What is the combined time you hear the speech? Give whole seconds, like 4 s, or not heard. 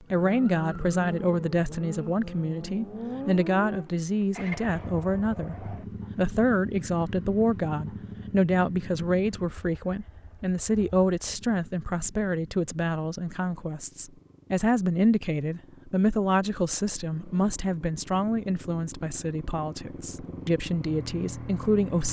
22 s.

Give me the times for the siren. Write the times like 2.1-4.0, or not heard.
not heard.